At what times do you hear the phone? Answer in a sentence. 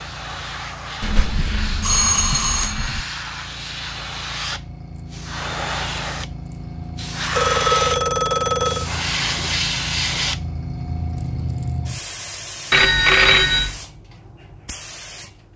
The phone can be heard from 1.0 to 3.0 s, from 7.3 to 8.8 s and from 12.7 to 13.8 s.